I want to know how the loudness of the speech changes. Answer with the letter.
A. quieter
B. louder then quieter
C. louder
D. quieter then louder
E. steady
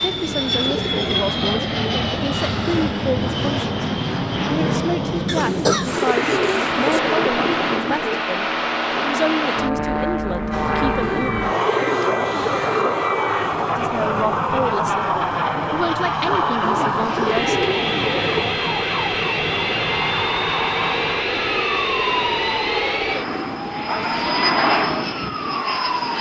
E.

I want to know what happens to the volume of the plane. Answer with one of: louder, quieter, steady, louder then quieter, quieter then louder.
steady.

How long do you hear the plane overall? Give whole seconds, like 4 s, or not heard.
26 s.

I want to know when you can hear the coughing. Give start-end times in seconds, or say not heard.
5.2-7.0.